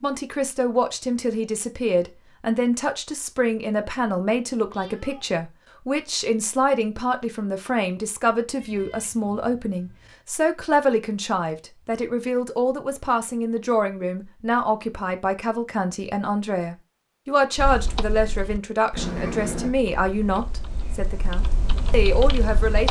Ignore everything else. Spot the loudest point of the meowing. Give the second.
19 s.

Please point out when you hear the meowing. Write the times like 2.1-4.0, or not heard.
4.7-5.3, 8.6-10.2, 18.9-19.8.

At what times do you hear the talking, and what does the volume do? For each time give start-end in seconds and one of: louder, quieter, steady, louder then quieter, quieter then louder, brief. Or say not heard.
0.0-22.8 steady.